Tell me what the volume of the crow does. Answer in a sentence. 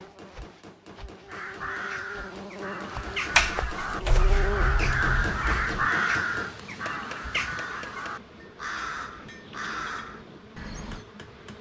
The loudness of the crow goes up, then down.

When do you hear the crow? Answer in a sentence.
You can hear the crow from 1.2 to 11.1 s.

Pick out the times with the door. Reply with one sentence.
You can hear the door from 3.4 to 5.9 s.